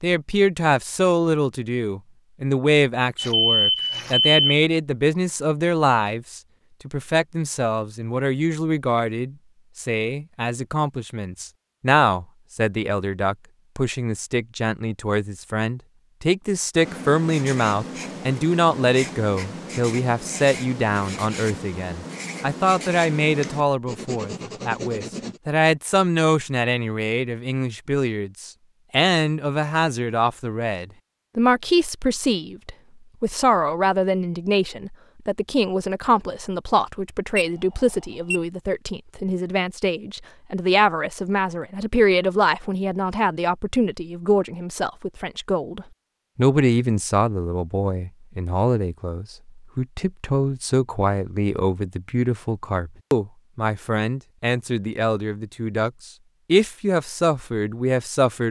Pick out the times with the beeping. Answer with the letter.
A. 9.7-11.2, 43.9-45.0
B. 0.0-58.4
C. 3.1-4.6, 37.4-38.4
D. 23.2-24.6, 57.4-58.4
C.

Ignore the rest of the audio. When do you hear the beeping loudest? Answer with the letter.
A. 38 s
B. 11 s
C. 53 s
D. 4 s
D.